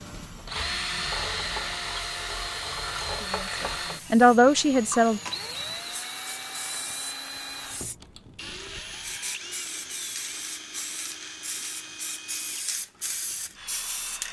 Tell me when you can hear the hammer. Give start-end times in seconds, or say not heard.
not heard.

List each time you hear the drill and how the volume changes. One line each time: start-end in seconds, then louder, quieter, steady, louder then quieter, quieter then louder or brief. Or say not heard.
0.0-14.2 quieter.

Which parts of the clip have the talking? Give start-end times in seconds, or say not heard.
3.2-5.2.